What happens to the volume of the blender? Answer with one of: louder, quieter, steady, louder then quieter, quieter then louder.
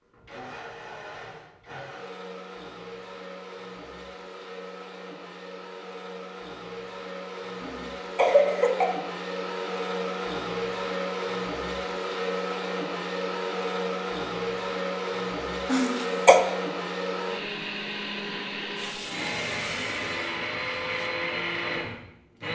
louder.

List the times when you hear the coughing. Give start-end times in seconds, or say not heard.
7.6-8.8, 15.7-16.4.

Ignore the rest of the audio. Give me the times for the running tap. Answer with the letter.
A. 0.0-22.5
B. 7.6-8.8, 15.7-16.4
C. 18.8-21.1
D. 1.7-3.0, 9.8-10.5
C.